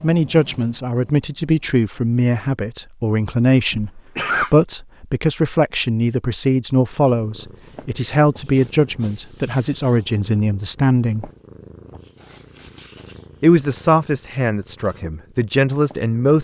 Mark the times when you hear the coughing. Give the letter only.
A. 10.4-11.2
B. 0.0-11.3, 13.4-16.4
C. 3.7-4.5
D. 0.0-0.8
C.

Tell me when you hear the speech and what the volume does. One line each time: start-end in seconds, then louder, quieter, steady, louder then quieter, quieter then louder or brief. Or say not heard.
0.0-11.3 steady
13.4-16.4 brief.